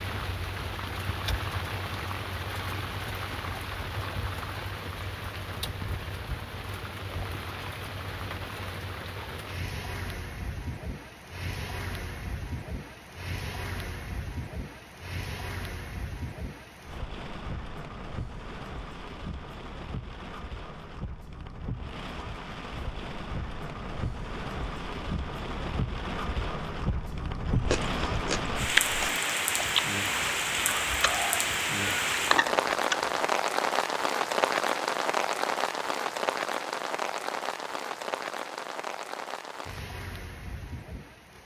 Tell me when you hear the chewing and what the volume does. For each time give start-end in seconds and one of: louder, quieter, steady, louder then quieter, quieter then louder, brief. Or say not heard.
27.4-33.2 quieter then louder.